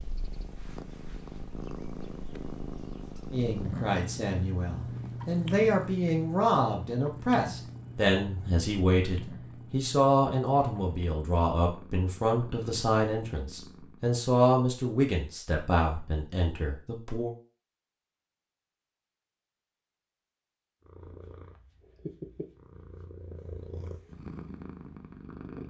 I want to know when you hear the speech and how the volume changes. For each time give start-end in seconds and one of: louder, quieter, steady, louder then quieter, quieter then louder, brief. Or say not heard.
3.3-17.3 steady.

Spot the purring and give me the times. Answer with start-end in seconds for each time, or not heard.
0.0-14.1, 20.8-25.6.